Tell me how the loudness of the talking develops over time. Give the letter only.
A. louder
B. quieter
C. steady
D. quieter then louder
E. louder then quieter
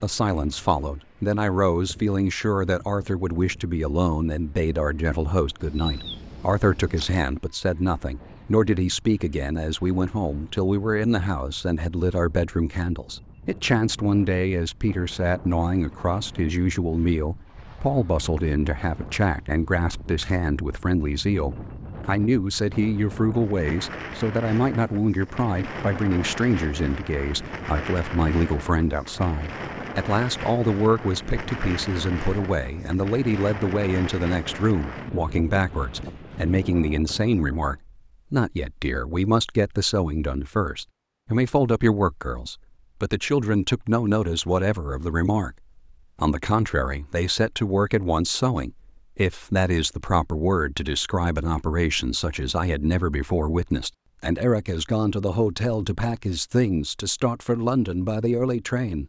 C.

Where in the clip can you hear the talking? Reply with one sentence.
You can hear the talking from 0.0 to 59.0 s.